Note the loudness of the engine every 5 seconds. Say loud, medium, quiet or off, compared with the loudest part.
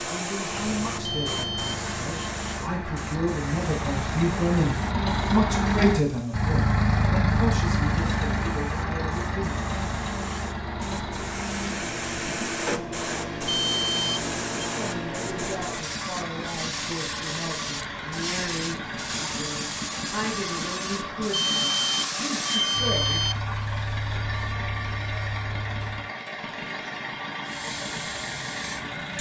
medium, loud, medium, medium, medium, medium.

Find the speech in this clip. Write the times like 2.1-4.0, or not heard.
0.0-9.7, 14.8-23.2.